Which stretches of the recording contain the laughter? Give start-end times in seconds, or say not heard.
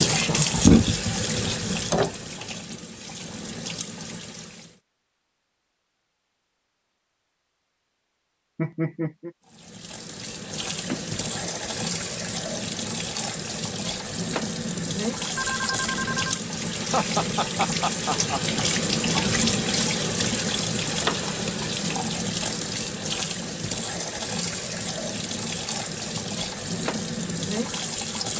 8.6-9.3, 16.8-18.4.